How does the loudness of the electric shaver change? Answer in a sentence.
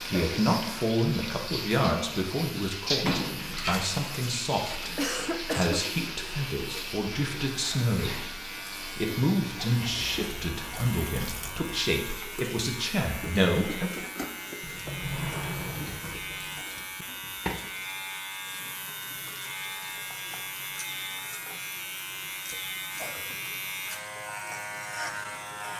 The loudness of the electric shaver goes up.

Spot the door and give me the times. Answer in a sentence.
You can hear the door from 3.0 to 4.9 s and from 14.6 to 16.6 s.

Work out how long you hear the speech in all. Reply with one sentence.
The speech can be heard for 14 seconds in total.